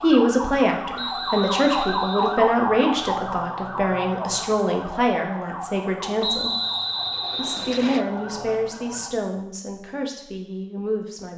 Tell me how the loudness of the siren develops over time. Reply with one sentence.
The loudness of the siren goes down.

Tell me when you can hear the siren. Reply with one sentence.
The siren can be heard from 0.0 to 9.1 s.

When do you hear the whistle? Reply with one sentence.
The whistle can be heard from 0.9 to 2.4 s and from 6.2 to 8.1 s.